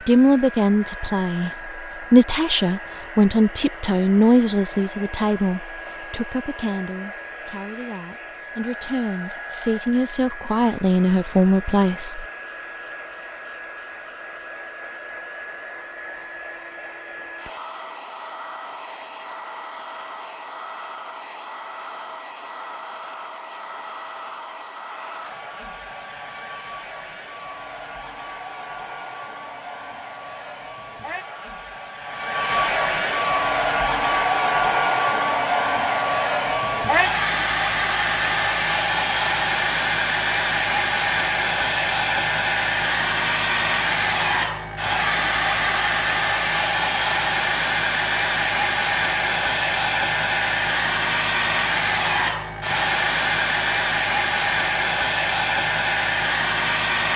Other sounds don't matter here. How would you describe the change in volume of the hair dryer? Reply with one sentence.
The volume of the hair dryer goes up.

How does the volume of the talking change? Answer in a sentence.
The loudness of the talking goes down, then up.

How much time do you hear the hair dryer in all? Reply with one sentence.
The hair dryer can be heard for 57 seconds in total.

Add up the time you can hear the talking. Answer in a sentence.
The talking can be heard for 12 seconds in total.